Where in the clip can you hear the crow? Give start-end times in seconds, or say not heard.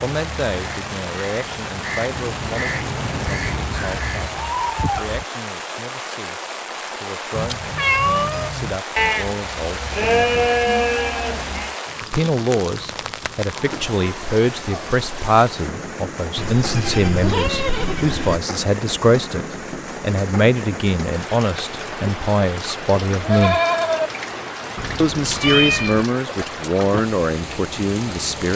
0.0-4.8.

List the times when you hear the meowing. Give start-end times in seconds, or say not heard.
7.3-8.8, 24.8-26.1.